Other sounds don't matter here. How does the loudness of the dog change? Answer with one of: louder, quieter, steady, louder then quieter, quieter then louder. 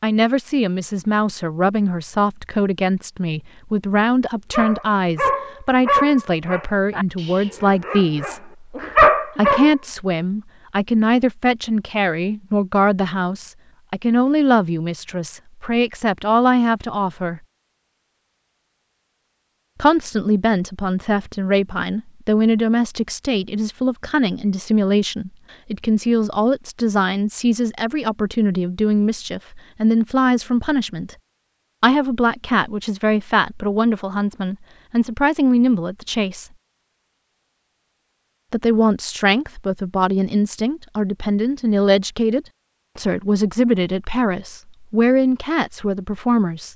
quieter then louder.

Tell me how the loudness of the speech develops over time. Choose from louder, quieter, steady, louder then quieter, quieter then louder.
steady.